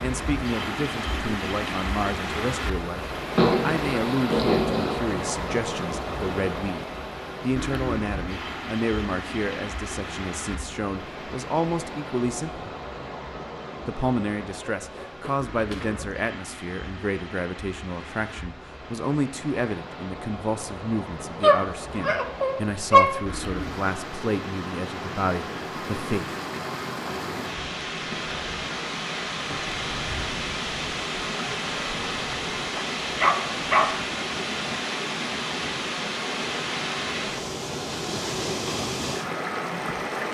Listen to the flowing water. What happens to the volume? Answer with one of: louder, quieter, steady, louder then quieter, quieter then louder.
quieter then louder.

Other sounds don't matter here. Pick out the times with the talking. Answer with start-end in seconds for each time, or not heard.
0.0-12.7, 13.8-26.2.